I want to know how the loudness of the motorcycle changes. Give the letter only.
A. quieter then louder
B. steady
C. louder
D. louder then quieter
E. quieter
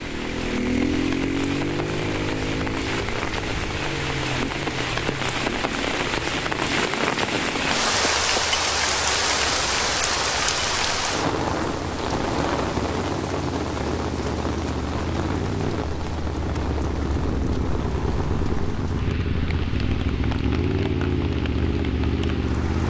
A.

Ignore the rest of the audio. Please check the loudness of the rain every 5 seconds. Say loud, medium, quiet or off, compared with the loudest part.
medium, loud, loud, medium, quiet.